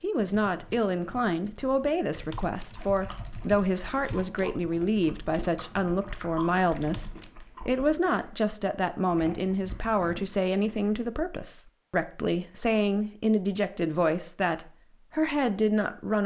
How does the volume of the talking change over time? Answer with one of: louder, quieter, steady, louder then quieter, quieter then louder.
steady.